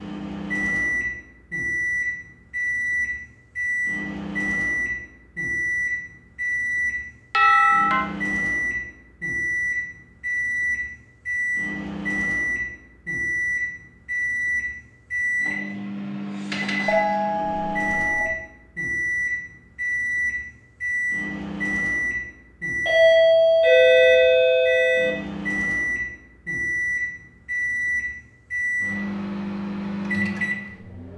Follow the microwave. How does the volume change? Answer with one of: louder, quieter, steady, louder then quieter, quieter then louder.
steady.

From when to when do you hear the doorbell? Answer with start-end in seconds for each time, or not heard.
7.3-8.1, 16.9-18.2, 22.9-25.1.